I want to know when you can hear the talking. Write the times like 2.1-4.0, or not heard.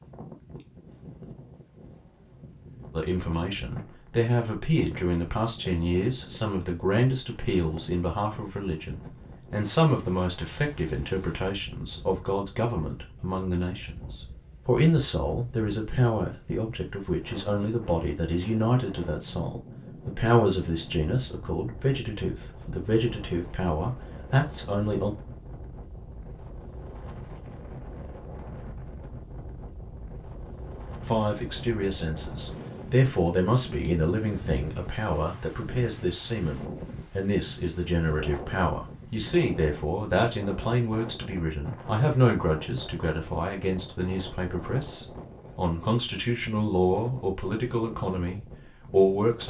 2.9-25.1, 31.1-49.4.